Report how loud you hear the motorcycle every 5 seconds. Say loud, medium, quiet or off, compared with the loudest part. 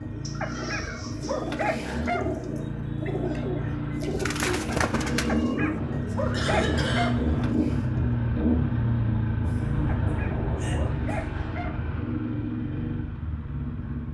medium, loud, medium.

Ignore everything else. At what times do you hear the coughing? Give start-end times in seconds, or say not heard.
0.2-1.4, 6.3-7.2, 9.4-11.3.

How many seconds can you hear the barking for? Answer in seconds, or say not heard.
6 s.